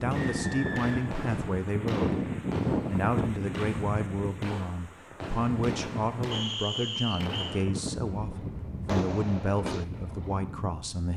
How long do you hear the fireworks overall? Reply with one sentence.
The fireworks can be heard for 10 seconds in total.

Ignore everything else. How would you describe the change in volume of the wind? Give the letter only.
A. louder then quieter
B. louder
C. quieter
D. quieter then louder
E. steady
C.